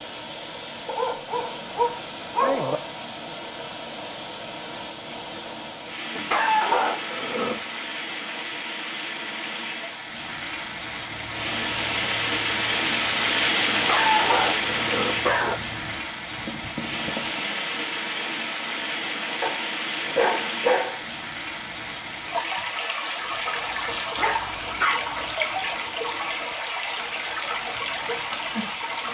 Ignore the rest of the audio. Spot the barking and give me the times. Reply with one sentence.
The barking can be heard from 0.8 to 2.8 s, from 6.2 to 7.7 s, from 13.7 to 15.6 s, from 19.4 to 21.1 s and from 24.1 to 25.4 s.